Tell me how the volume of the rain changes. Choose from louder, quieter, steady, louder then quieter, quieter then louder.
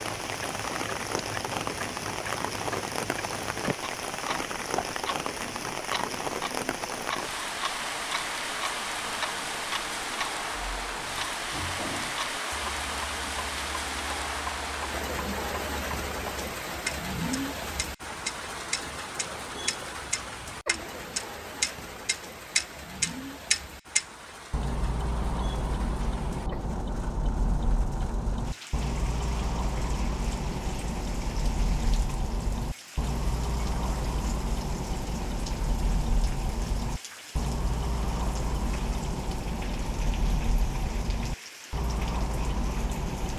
quieter.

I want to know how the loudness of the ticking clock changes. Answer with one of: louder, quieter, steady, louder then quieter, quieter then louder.
louder.